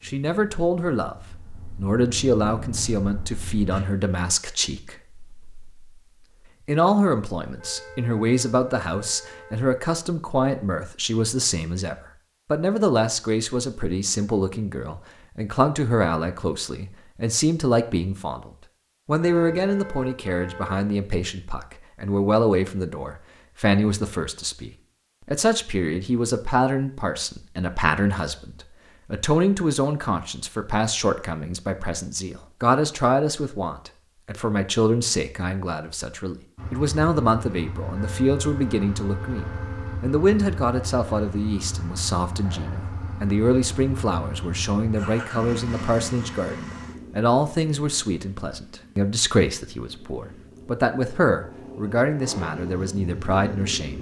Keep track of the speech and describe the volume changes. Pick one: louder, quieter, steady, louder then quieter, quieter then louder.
steady.